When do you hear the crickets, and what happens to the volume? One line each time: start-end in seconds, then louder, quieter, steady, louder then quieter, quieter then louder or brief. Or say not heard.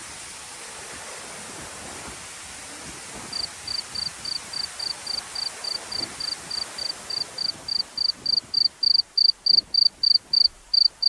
3.3-11.0 louder.